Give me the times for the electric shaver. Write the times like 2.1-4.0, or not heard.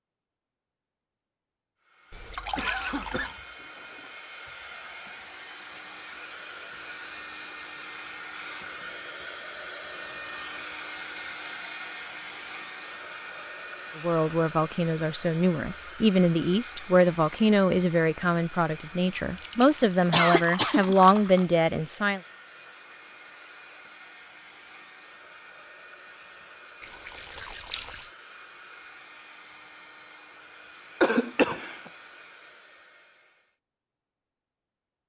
not heard.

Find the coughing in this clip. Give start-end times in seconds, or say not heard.
2.1-3.3, 19.6-20.9, 31.0-31.8.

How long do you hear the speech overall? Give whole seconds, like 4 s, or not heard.
8 s.